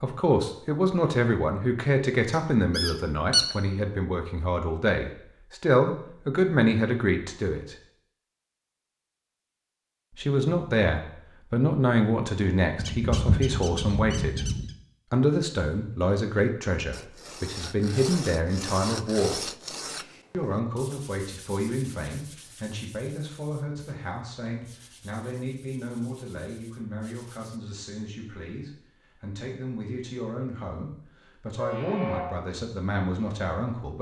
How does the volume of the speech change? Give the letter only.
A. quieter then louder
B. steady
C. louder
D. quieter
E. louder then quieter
D.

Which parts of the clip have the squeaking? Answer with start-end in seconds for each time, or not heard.
2.8-3.5, 12.8-14.7, 31.6-32.4.